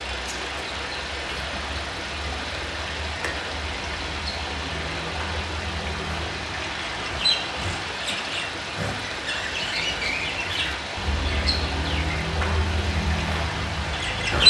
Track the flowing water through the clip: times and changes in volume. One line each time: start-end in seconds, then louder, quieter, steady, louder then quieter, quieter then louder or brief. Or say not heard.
0.0-14.4 steady.